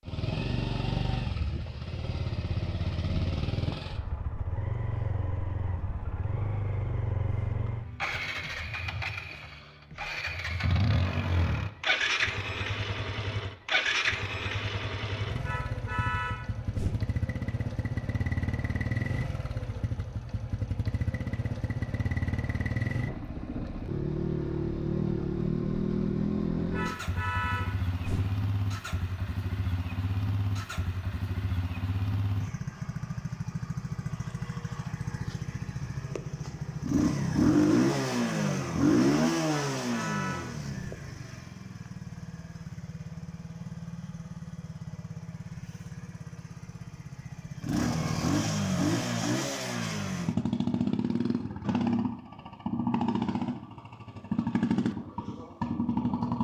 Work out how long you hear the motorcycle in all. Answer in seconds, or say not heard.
56 s.